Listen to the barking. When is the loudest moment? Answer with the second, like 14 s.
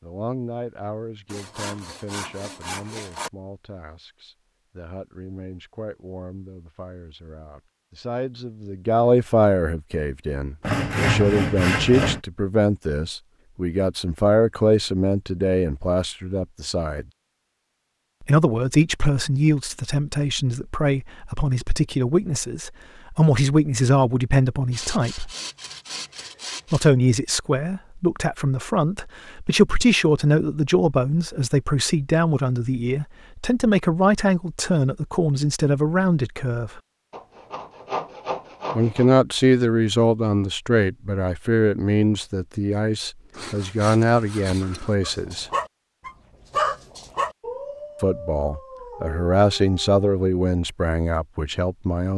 47 s.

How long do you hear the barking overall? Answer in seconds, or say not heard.
5 s.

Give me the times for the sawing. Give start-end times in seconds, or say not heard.
1.2-3.3, 10.6-12.2, 24.7-26.9, 37.1-39.1, 43.3-45.0.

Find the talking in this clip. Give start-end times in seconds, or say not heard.
0.0-17.1, 18.2-25.3, 26.7-36.8, 38.8-45.5, 48.0-52.1.